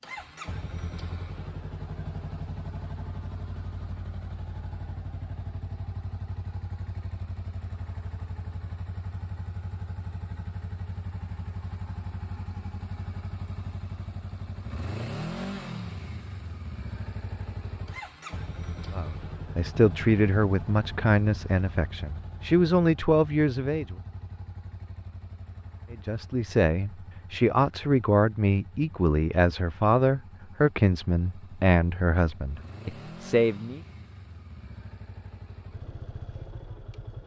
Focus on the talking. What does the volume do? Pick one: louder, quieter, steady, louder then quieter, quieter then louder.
steady.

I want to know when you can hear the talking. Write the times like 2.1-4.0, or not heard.
18.9-23.9, 25.9-33.8.